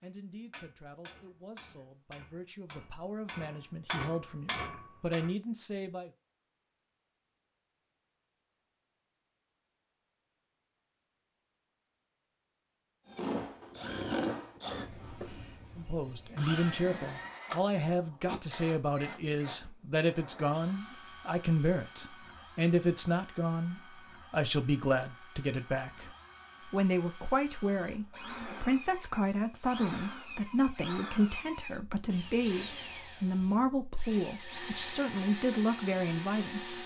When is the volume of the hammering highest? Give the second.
4 s.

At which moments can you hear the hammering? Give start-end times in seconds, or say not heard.
0.0-5.3.